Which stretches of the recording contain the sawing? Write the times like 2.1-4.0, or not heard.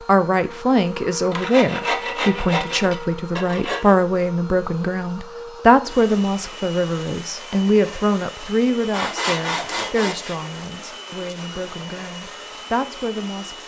1.3-4.0, 8.9-10.3.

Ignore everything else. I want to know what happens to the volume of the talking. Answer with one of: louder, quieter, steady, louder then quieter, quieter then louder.
quieter.